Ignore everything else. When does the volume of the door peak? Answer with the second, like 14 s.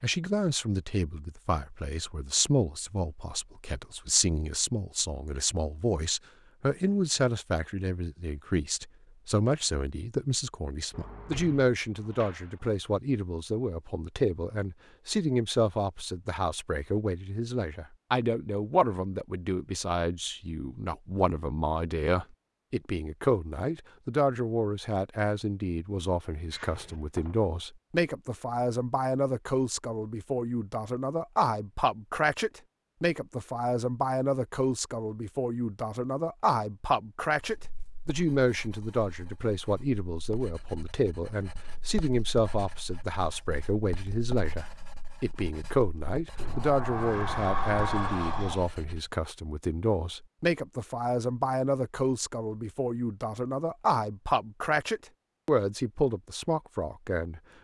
48 s.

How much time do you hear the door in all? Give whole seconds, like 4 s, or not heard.
5 s.